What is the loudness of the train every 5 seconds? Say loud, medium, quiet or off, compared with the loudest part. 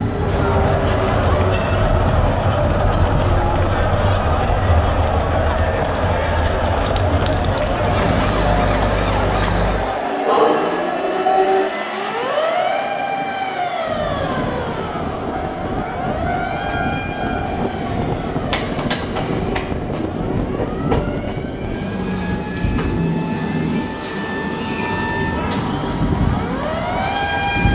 medium, quiet, medium, loud, loud, loud.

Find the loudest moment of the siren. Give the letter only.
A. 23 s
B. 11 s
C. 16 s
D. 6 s
B.